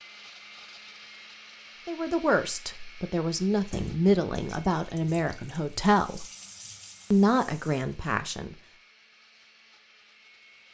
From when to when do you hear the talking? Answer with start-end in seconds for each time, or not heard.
1.9-6.2, 7.1-8.6.